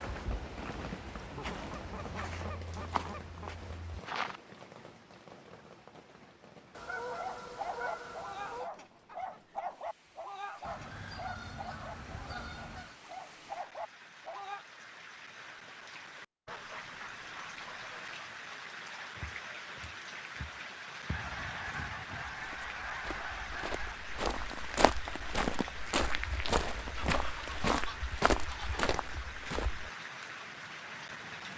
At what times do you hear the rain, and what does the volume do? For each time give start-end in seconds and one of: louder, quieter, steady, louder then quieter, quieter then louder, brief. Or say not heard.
0.0-31.5 quieter then louder.